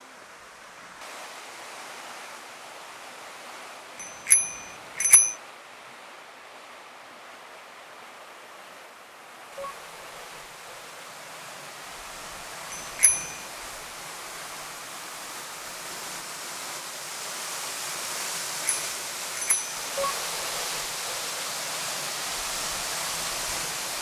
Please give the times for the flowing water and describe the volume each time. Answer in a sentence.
The flowing water can be heard from 0.0 to 23.9 s, getting louder.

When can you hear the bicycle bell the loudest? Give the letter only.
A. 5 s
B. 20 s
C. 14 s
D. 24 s
A.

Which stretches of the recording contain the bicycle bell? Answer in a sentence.
The bicycle bell can be heard from 4.0 to 5.3 s, from 12.7 to 13.3 s and from 18.6 to 19.8 s.